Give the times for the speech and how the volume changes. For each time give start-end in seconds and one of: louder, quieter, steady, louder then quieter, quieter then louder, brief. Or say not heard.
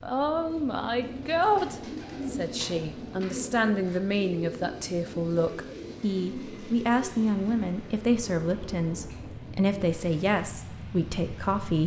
0.0-11.8 steady.